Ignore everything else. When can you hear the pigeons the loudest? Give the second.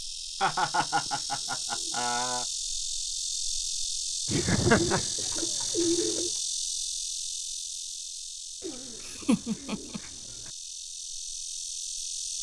6 s.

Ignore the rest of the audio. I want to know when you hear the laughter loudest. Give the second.
5 s.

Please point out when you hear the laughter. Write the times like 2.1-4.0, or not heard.
0.4-2.5, 4.2-5.0, 9.1-10.0.